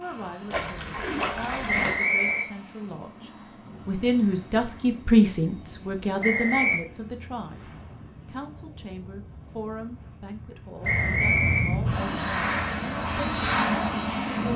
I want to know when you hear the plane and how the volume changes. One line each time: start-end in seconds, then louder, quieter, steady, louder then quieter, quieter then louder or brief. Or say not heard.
0.0-14.5 louder.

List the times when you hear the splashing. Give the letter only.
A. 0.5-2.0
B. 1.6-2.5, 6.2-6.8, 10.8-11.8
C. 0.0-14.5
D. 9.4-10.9
A.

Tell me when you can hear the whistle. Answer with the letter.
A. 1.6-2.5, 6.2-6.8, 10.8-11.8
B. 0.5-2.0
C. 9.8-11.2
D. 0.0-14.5
A.